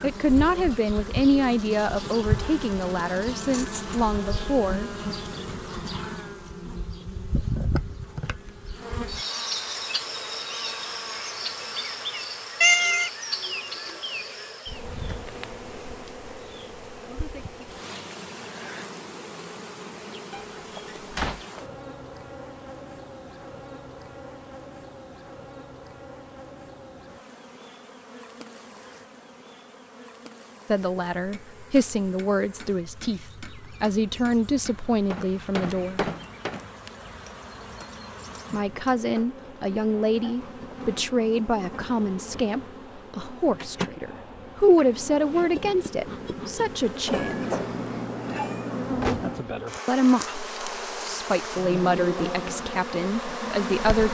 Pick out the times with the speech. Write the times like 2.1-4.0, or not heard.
0.0-4.9, 30.7-36.1, 38.5-47.5, 49.9-54.0.